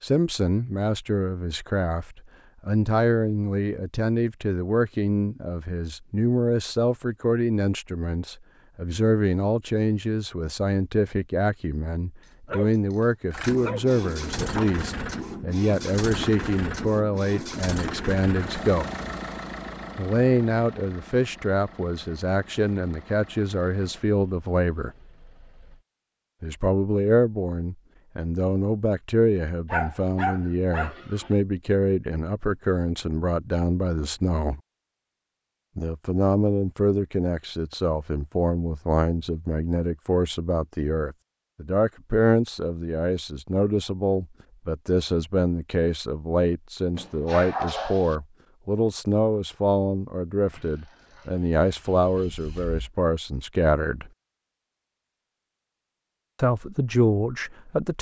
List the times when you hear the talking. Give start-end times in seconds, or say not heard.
0.0-18.9, 19.9-24.9, 26.4-34.6, 35.8-54.1, 56.4-57.9.